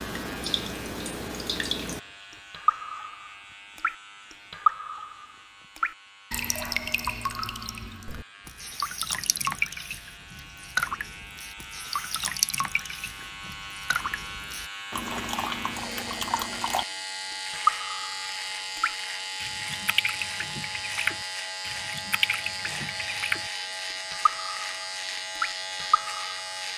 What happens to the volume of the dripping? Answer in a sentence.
The loudness of the dripping stays about the same.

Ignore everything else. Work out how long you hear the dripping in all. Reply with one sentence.
You can hear the dripping for 26 seconds altogether.